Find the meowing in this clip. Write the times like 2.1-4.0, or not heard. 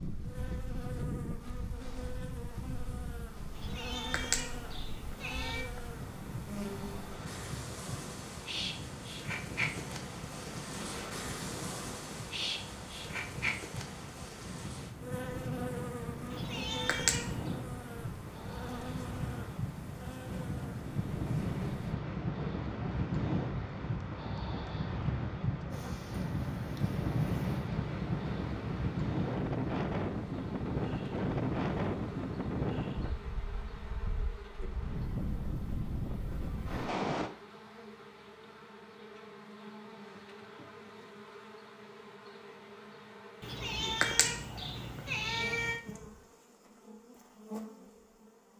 3.5-5.7, 16.3-17.5, 43.4-45.8.